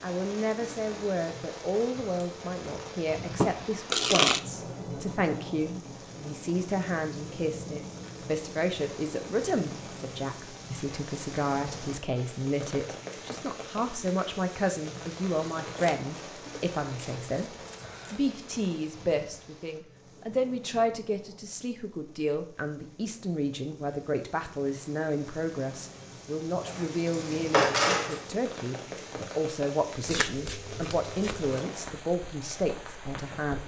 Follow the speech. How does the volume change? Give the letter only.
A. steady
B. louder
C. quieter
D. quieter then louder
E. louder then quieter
A.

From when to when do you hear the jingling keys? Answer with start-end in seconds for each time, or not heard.
26.6-28.2.